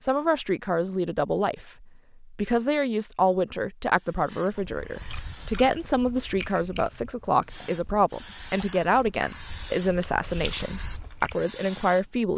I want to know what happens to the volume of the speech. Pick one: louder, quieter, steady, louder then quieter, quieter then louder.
steady.